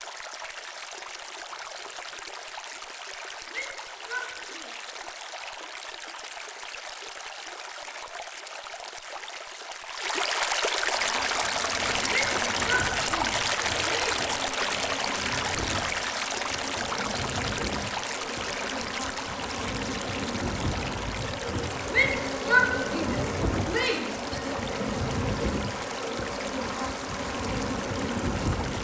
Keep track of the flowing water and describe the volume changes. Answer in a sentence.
The loudness of the flowing water goes up, then down.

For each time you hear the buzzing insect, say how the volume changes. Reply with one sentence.
You can hear the buzzing insect from 10.8 to 28.7 s, getting louder.